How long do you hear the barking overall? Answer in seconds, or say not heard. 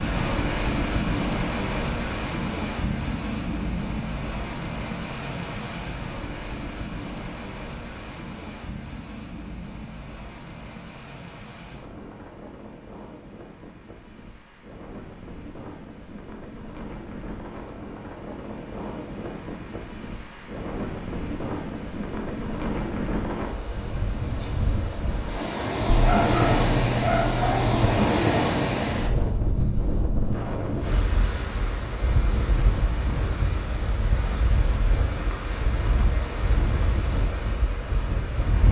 2 s.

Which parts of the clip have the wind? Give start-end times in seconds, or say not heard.
0.0-38.6.